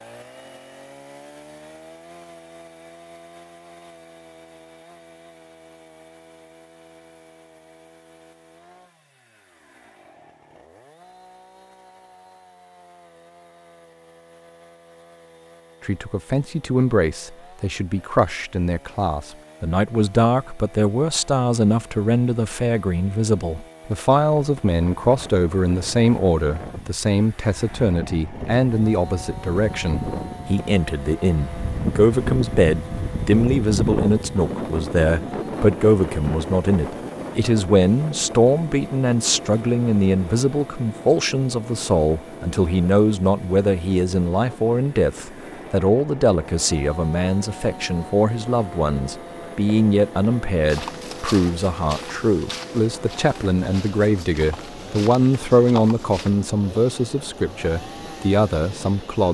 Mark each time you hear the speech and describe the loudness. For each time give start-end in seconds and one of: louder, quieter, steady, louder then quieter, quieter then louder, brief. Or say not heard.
15.8-59.2 steady.